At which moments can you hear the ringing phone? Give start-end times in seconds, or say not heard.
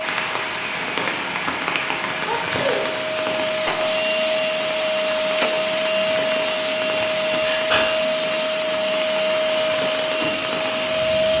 not heard.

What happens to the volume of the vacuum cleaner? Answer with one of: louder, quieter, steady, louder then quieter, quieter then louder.
louder.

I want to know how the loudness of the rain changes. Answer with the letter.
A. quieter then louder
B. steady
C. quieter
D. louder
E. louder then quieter
C.